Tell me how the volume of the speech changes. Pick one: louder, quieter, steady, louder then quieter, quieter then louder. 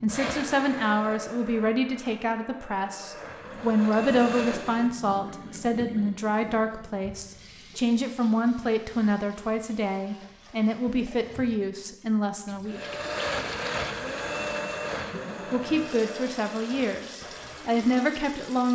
steady.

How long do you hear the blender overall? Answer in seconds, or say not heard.
11 s.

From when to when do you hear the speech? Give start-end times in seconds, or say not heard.
0.0-12.9, 15.5-18.7.